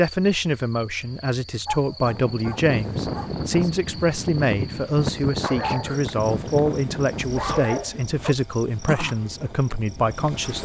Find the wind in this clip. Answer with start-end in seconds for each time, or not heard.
2.0-10.6.